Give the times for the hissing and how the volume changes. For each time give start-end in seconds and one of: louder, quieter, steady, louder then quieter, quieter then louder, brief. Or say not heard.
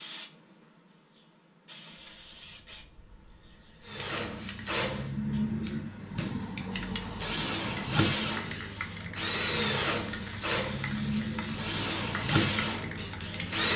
0.0-13.7 louder.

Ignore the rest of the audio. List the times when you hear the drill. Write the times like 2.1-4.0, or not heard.
3.9-13.7.